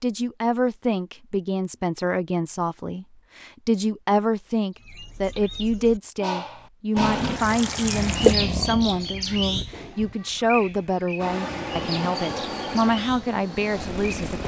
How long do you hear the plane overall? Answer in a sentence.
The plane can be heard for 5 seconds in total.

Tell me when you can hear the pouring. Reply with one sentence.
You can hear the pouring from 7.0 to 8.3 s.